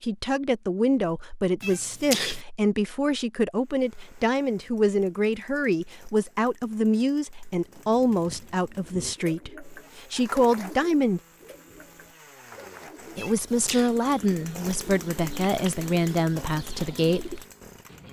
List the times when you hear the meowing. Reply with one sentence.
The meowing can be heard from 1.6 to 2.4 s and from 13.2 to 13.9 s.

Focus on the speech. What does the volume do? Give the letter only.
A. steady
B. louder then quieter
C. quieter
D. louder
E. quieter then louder
A.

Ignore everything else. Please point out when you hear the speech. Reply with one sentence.
The speech can be heard from 0.0 to 11.2 s and from 13.2 to 17.4 s.